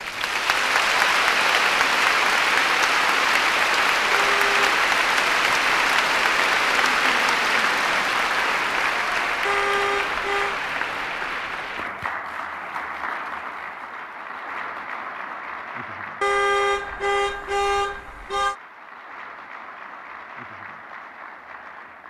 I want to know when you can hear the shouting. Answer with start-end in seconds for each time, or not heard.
not heard.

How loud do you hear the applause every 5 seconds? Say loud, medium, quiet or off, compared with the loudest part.
loud, loud, medium, quiet, quiet.